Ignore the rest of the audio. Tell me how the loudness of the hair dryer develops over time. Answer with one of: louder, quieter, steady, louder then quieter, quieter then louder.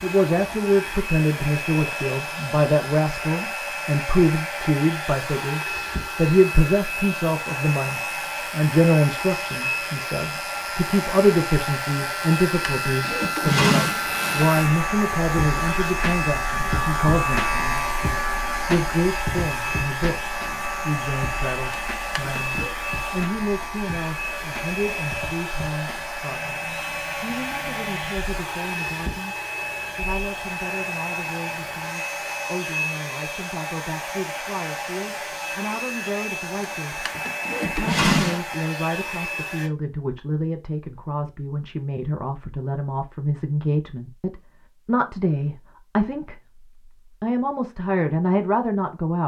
steady.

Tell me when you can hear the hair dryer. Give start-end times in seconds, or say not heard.
0.0-39.7.